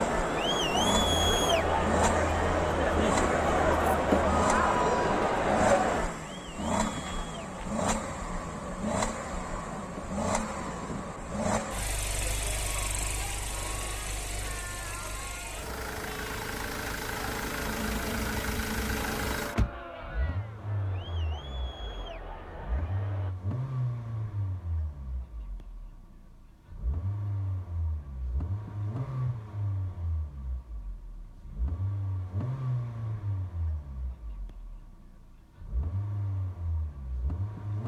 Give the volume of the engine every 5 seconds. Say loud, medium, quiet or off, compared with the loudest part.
loud, loud, loud, loud, medium, medium, medium, medium.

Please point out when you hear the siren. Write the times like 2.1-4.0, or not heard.
not heard.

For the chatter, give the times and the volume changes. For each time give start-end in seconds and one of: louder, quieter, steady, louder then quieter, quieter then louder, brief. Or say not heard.
0.0-23.4 quieter.